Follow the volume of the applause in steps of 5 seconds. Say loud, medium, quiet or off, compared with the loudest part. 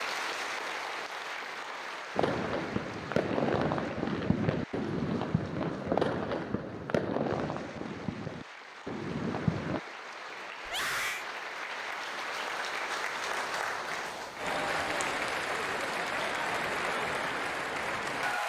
medium, quiet, loud, loud.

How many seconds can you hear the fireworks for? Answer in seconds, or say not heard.
8 s.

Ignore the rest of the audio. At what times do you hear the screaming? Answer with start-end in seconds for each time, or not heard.
10.7-11.2.